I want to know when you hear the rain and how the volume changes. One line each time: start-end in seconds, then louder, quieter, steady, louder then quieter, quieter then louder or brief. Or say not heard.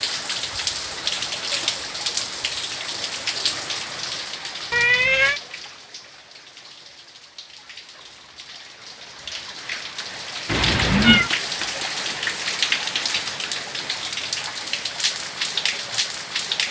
0.0-16.6 quieter then louder.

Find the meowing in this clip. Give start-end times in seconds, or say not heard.
4.7-5.4, 10.4-11.3.